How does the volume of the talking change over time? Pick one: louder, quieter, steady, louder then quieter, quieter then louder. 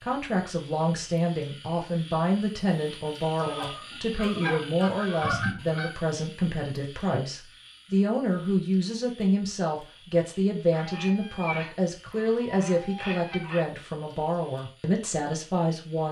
steady.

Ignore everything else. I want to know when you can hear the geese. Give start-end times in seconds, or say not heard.
3.4-6.0, 10.7-13.7.